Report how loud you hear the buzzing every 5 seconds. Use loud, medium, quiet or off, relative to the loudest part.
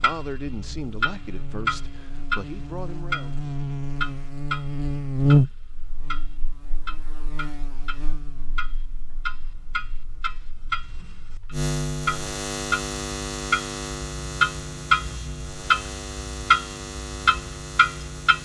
medium, loud, medium, medium.